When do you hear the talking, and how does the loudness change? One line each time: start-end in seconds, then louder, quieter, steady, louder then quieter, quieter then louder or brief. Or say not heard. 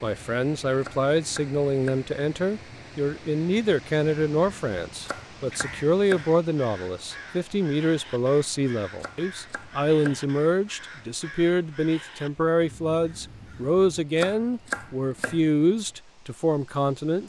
0.0-17.2 steady.